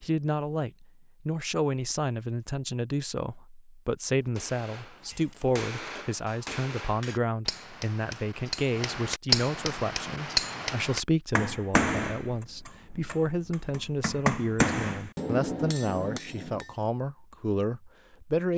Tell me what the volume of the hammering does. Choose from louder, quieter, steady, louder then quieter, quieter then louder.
louder.